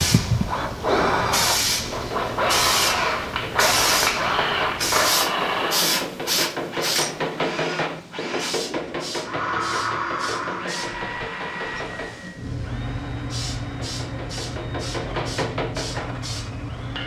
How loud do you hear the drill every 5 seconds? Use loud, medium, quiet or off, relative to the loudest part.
loud, loud, medium, medium.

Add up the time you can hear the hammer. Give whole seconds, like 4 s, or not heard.
14 s.